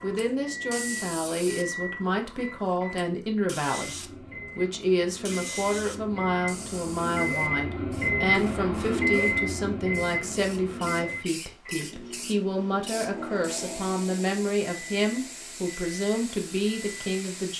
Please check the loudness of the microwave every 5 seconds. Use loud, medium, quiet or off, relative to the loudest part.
medium, loud, medium, quiet.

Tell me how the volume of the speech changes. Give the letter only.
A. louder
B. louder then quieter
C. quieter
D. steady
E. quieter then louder
D.